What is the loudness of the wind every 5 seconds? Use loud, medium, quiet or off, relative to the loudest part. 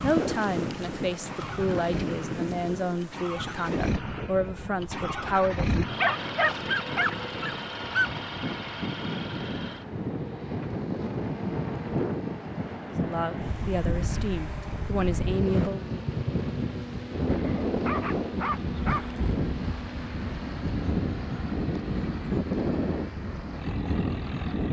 loud, medium, loud, loud, loud.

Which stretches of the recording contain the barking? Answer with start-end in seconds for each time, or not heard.
6.0-8.1, 17.2-19.1.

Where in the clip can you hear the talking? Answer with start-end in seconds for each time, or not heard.
0.0-5.7, 13.0-15.9.